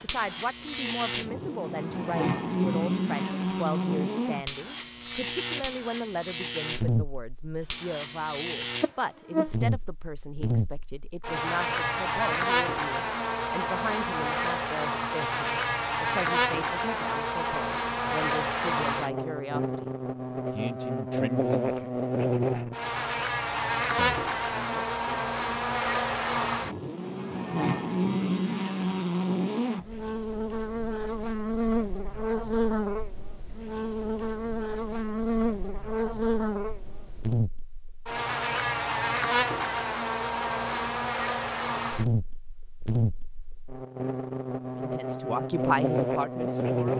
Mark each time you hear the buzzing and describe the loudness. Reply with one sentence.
The buzzing can be heard from 0.0 to 46.9 s, at a steady volume.